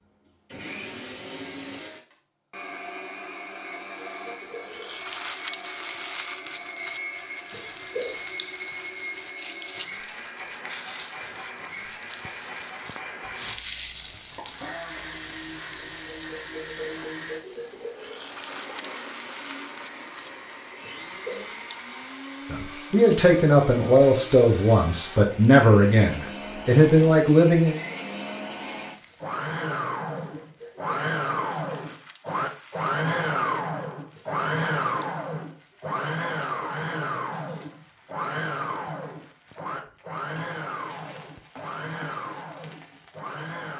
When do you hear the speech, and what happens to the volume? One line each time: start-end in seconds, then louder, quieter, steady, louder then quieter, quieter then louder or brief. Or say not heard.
22.5-27.8 steady.